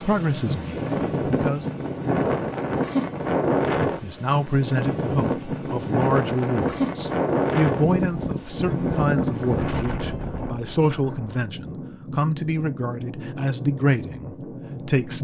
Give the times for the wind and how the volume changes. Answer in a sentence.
The wind can be heard from 0.0 to 15.1 s, getting quieter.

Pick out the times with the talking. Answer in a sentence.
You can hear the talking from 0.0 to 1.6 s and from 4.0 to 15.1 s.